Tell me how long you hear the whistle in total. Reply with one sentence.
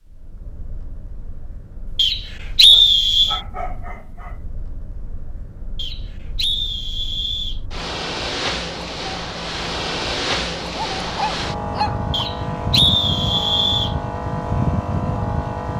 The whistle can be heard for 5 seconds in total.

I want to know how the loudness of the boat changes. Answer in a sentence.
The loudness of the boat goes up.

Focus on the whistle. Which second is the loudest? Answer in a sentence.
The loudest moment of the whistle is at 3 seconds.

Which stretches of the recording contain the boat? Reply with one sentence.
The boat can be heard from 0.0 to 15.7 s.